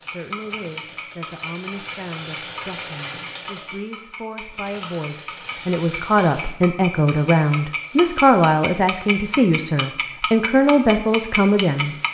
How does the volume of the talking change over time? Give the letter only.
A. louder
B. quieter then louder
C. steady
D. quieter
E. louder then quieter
A.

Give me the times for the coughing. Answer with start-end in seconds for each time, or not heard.
not heard.